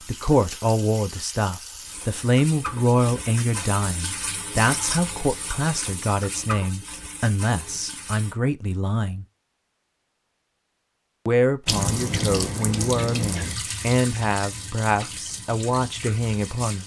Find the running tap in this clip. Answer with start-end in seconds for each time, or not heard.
0.0-8.3, 11.7-16.8.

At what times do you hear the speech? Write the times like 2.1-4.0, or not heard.
0.1-9.2, 11.2-16.8.